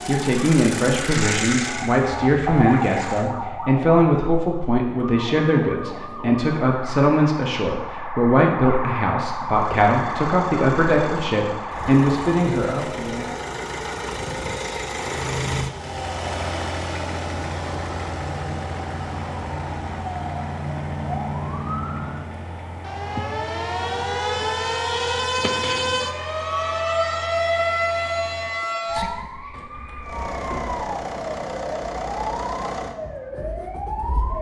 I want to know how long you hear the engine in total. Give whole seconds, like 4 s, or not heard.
27 s.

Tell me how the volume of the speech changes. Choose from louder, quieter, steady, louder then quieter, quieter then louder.
steady.